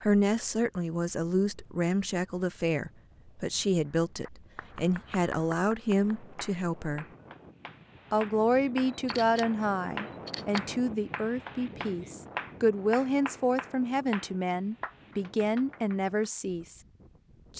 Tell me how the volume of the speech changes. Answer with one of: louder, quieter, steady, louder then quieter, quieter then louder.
steady.